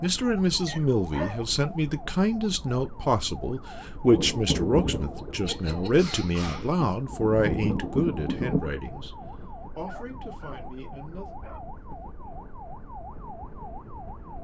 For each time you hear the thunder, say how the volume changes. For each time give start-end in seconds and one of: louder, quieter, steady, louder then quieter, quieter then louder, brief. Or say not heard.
4.0-8.8 quieter then louder.